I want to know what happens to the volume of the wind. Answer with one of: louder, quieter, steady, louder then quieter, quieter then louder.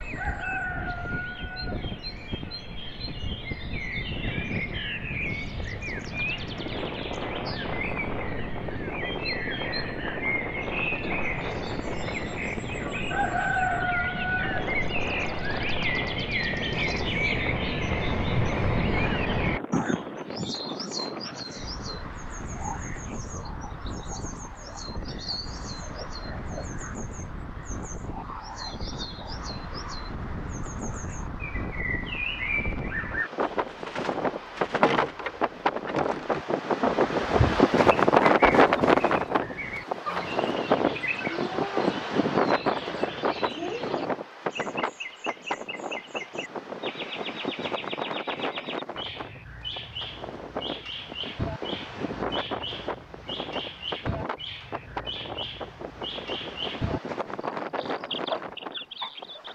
louder then quieter.